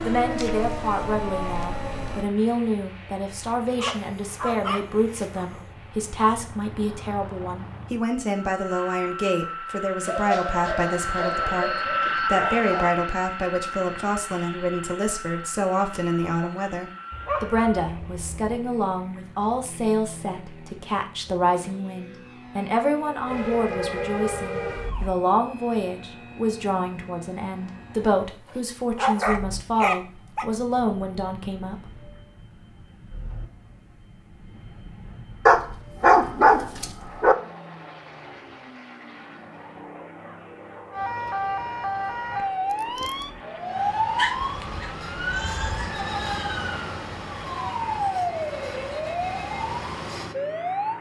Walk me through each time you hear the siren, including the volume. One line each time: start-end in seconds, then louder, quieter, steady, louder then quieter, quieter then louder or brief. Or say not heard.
0.0-2.3 brief
23.2-25.1 brief
40.9-50.9 steady.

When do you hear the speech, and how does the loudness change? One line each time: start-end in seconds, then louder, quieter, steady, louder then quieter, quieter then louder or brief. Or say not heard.
0.0-31.9 steady.